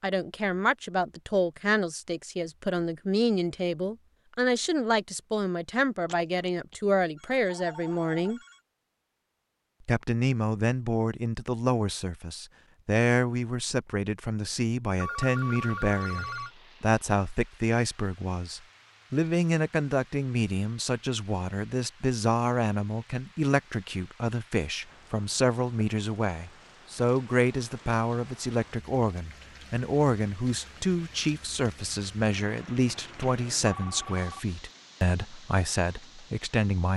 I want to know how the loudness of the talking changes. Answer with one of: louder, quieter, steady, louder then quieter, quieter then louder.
steady.